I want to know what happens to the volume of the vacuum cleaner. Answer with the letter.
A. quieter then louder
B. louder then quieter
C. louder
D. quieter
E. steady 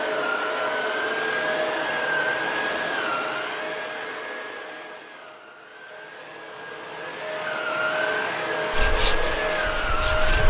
A.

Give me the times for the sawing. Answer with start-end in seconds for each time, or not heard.
8.7-10.4.